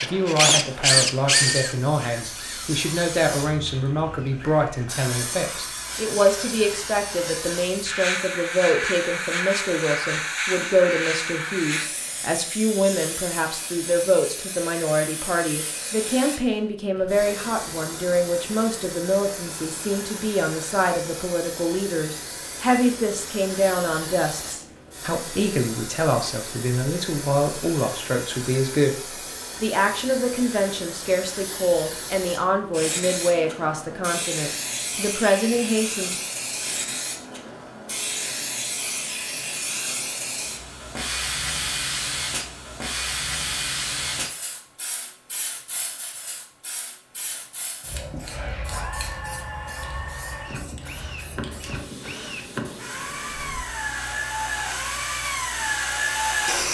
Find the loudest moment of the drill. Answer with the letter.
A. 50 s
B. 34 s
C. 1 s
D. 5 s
C.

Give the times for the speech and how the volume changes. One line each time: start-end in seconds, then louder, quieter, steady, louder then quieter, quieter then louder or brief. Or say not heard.
0.0-36.2 steady.